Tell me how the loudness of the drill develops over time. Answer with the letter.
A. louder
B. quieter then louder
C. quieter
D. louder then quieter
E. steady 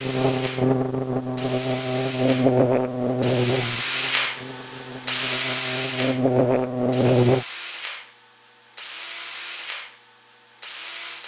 D.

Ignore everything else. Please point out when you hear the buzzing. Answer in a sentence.
The buzzing can be heard from 0.0 to 7.5 s.